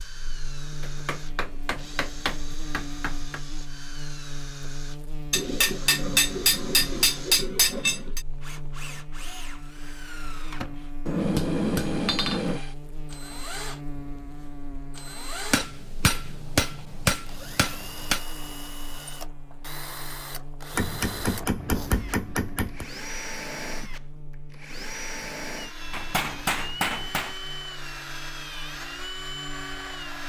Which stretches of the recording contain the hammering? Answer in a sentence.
You can hear the hammering from 0.8 to 3.4 s, from 5.3 to 8.2 s, from 11.1 to 12.6 s, from 15.5 to 18.2 s, from 20.8 to 22.9 s and from 25.9 to 27.4 s.